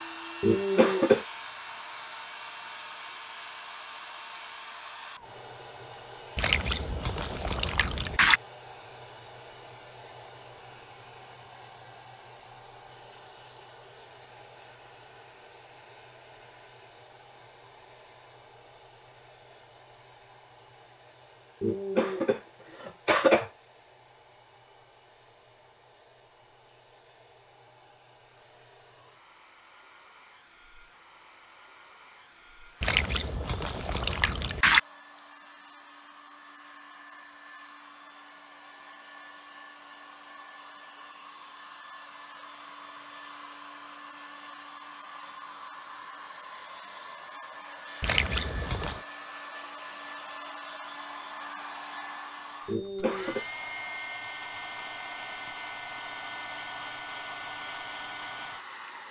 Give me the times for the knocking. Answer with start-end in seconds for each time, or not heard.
not heard.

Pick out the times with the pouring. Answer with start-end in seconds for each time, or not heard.
6.3-8.4, 32.8-34.8, 48.0-49.0.